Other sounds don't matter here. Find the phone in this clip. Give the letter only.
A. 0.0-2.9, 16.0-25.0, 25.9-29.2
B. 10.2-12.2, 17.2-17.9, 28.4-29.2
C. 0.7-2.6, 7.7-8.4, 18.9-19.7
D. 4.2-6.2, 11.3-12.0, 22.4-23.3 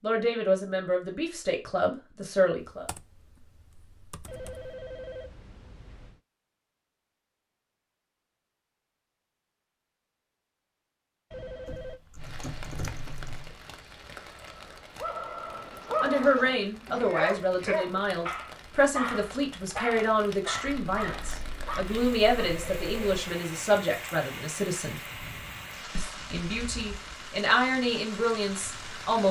D.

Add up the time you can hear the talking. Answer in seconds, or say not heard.
15 s.